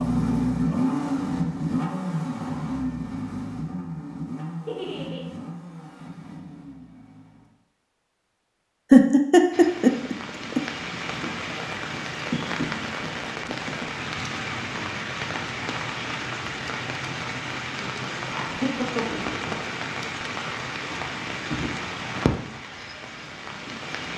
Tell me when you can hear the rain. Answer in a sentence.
You can hear the rain from 9.5 to 24.1 s.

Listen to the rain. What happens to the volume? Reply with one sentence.
The loudness of the rain stays about the same.